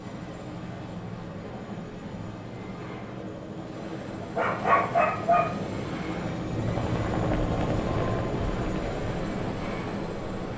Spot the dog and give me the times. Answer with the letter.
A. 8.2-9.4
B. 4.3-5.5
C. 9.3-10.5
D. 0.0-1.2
B.